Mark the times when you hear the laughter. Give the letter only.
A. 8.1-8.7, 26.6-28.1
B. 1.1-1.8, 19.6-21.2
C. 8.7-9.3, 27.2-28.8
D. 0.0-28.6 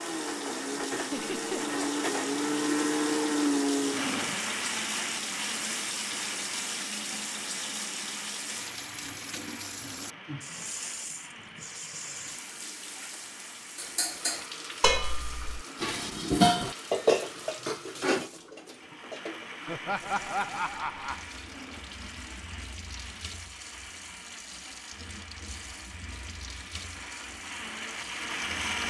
B.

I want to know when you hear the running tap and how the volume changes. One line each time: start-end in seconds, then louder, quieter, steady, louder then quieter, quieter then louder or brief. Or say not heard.
0.0-28.6 quieter.